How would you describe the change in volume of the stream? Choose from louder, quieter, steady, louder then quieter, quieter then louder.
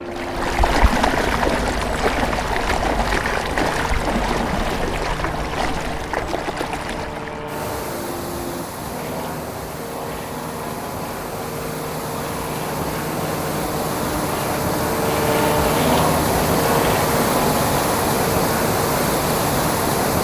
quieter then louder.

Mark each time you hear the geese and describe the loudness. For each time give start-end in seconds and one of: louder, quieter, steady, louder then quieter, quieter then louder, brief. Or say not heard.
not heard.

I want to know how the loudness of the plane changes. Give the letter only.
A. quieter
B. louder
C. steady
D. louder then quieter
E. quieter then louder
B.